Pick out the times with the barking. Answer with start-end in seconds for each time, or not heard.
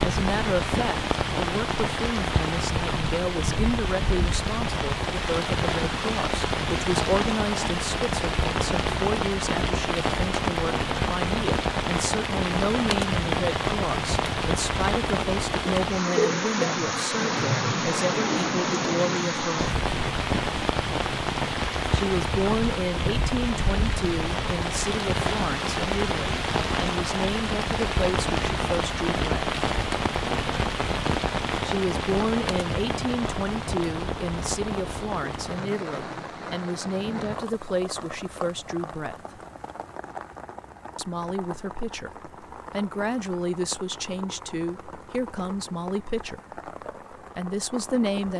not heard.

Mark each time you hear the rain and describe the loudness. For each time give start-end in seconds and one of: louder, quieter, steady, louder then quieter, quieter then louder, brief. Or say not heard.
0.0-48.3 quieter.